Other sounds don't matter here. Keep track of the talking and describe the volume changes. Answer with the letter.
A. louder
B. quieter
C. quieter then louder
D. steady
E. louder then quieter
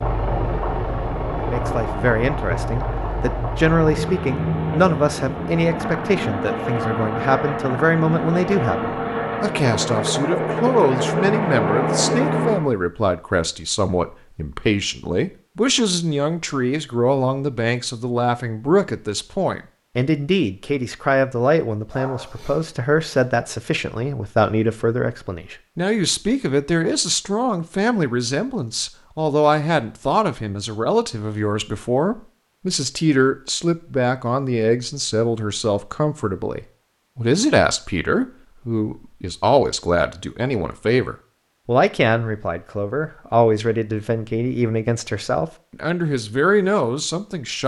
D.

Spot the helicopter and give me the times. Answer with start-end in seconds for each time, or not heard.
0.0-12.7.